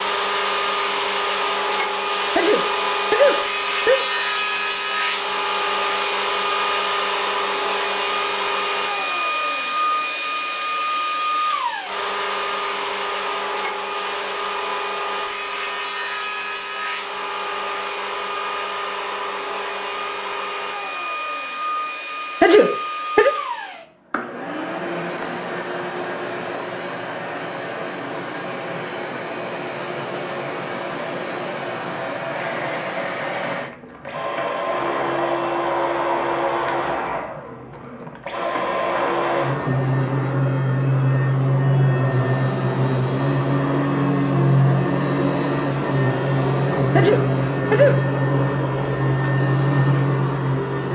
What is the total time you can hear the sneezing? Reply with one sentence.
You can hear the sneezing for 4 seconds altogether.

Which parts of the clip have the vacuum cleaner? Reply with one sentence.
The vacuum cleaner can be heard from 0.0 to 50.8 s.